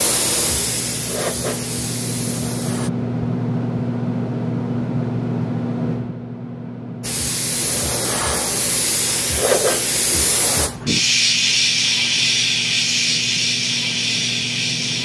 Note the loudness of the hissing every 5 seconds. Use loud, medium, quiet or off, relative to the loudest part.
medium, loud, loud.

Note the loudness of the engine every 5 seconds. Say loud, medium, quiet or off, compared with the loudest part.
loud, loud, medium.